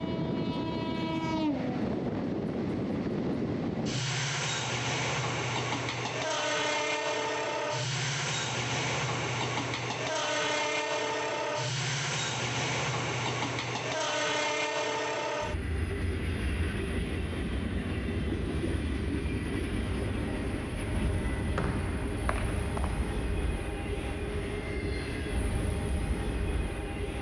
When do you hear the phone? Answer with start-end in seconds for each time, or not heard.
not heard.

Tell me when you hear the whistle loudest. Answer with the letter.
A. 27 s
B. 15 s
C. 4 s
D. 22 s
D.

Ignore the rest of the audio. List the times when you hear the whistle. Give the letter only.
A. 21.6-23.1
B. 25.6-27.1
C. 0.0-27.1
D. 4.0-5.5
A.